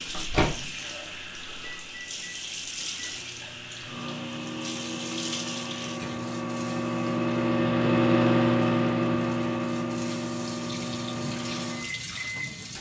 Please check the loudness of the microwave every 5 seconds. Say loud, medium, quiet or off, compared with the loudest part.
medium, loud, medium.